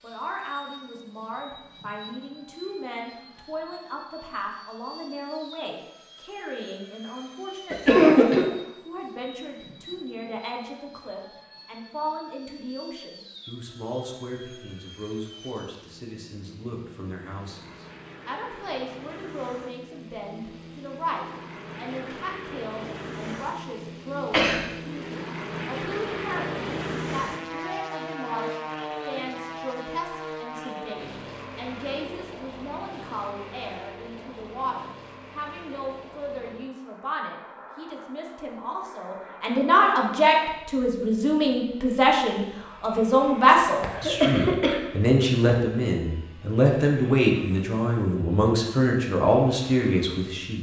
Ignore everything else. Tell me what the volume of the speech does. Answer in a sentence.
The volume of the speech goes up.